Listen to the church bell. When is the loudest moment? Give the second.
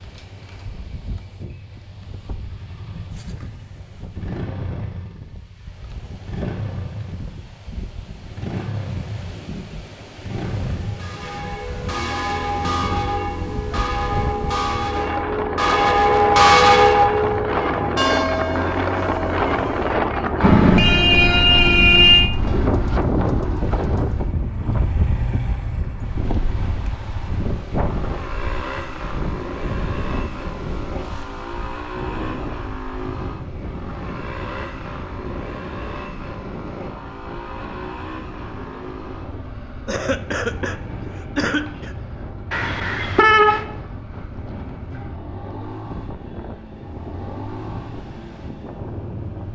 17 s.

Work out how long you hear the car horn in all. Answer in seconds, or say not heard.
3 s.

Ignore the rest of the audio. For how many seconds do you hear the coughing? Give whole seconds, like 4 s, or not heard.
2 s.